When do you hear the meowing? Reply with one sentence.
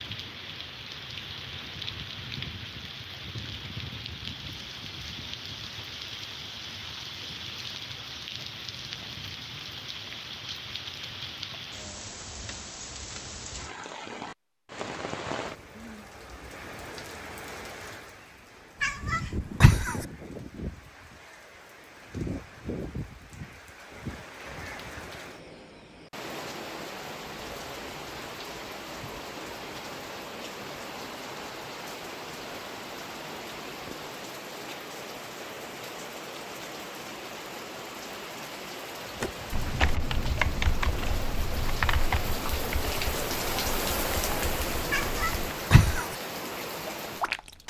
You can hear the meowing from 18.8 to 20.1 s and from 44.9 to 46.1 s.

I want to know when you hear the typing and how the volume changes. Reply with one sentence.
You can hear the typing from 39.2 to 46.0 s, getting quieter.